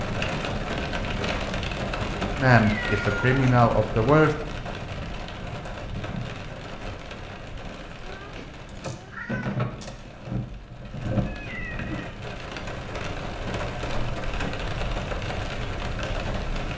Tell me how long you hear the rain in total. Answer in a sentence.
The rain can be heard for 17 seconds in total.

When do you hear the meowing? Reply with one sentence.
You can hear the meowing from 2.6 to 3.5 s, from 8.0 to 9.7 s and from 11.2 to 12.2 s.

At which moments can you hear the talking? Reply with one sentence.
You can hear the talking from 2.4 to 4.3 s.